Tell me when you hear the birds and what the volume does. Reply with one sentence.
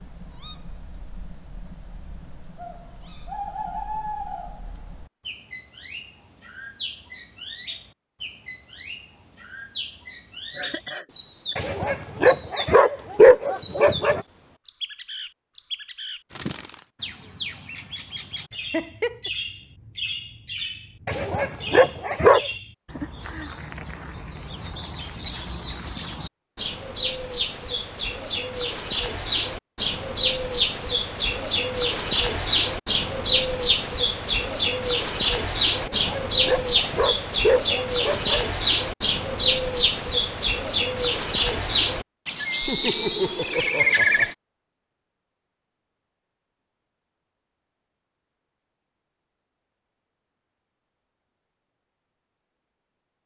You can hear the birds from 0.0 to 44.4 s, getting louder.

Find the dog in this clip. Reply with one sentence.
The dog can be heard from 11.6 to 14.2 s, from 21.1 to 22.4 s and from 35.8 to 38.5 s.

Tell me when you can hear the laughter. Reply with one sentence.
You can hear the laughter from 10.6 to 11.6 s, from 18.5 to 19.3 s and from 42.6 to 44.3 s.